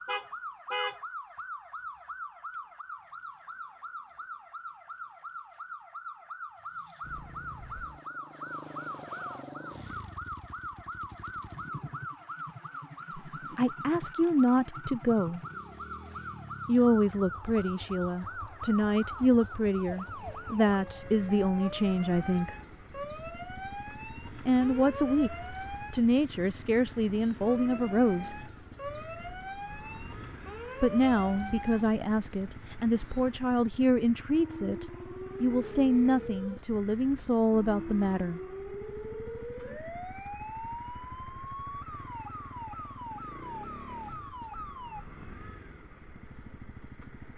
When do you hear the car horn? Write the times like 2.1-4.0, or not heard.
0.1-1.0.